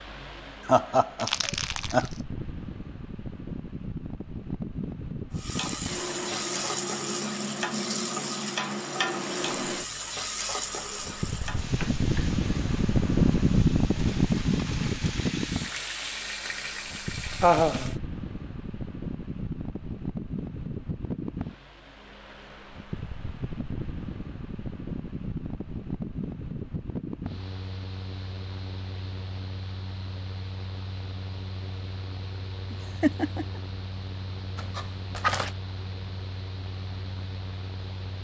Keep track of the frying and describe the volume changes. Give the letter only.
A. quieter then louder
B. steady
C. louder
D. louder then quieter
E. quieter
A.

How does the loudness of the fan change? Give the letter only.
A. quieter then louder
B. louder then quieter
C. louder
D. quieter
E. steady
B.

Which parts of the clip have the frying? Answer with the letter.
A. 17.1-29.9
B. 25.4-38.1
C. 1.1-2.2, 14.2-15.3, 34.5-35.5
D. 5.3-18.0
D.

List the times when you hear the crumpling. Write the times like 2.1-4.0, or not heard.
1.1-2.2, 14.2-15.3, 34.5-35.5.